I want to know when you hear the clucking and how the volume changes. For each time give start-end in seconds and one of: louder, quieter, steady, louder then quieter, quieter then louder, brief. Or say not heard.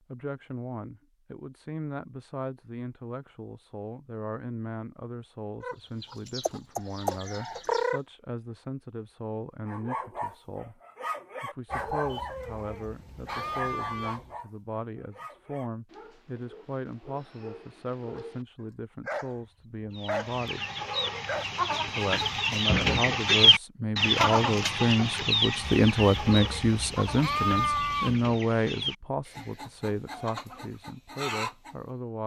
5.6-8.0 brief
19.9-31.8 louder then quieter.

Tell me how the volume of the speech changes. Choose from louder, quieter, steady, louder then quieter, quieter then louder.
louder.